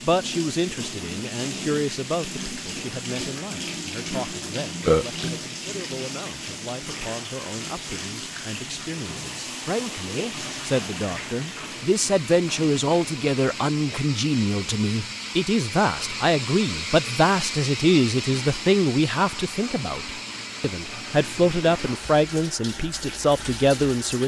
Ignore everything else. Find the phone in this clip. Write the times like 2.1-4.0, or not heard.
not heard.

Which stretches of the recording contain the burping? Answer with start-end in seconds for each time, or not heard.
4.8-5.2.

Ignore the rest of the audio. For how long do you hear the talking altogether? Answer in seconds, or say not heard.
24 s.